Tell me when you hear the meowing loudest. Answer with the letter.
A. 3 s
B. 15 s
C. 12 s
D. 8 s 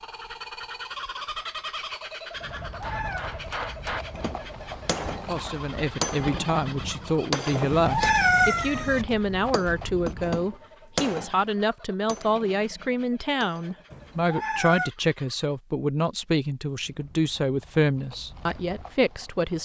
D.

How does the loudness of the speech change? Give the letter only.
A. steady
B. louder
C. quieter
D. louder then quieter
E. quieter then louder
A.